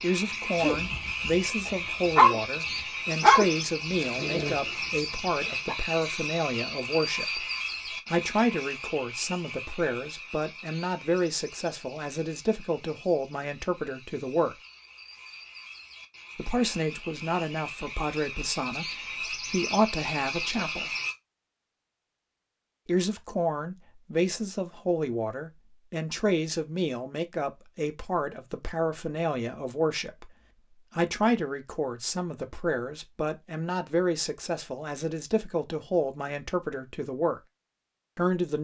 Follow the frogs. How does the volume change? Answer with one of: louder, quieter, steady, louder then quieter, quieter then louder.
quieter then louder.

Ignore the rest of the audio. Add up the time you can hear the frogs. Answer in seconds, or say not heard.
21 s.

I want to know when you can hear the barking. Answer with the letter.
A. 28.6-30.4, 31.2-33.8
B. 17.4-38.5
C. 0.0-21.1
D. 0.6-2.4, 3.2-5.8
D.